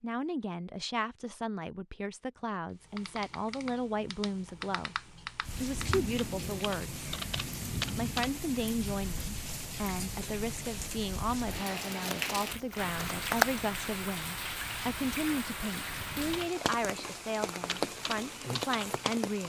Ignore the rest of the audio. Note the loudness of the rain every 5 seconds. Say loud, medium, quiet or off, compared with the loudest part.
off, loud, loud, loud.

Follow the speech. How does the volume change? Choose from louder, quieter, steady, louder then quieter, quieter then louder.
steady.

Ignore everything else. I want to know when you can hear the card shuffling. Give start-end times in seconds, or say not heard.
12.0-13.5.